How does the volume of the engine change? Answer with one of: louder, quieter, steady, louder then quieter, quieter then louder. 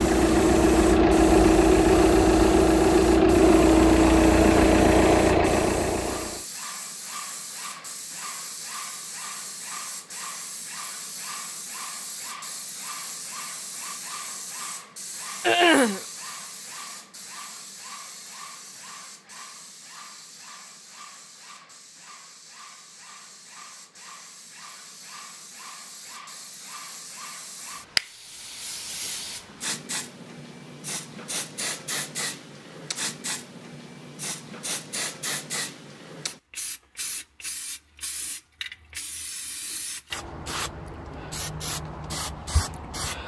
steady.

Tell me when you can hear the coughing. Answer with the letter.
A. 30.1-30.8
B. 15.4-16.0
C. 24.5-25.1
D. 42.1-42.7
B.